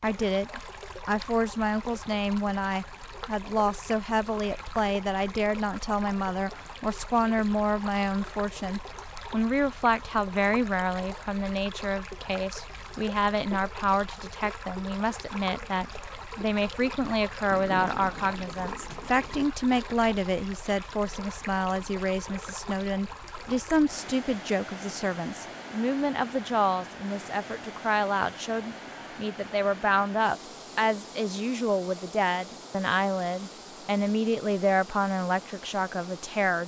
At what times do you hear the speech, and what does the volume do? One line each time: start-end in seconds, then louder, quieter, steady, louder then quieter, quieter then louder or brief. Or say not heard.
0.0-36.6 steady.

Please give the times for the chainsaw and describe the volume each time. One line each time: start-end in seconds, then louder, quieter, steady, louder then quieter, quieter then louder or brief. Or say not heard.
not heard.